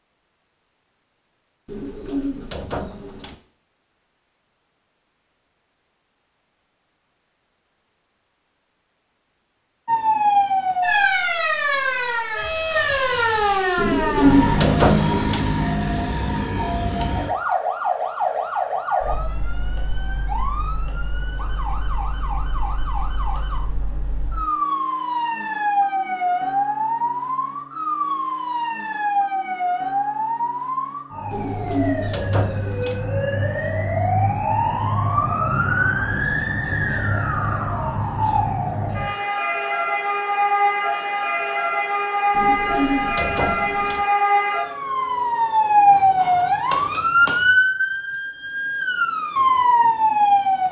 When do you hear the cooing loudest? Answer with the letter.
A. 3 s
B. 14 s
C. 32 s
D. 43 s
B.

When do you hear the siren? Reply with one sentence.
The siren can be heard from 9.8 to 50.6 s.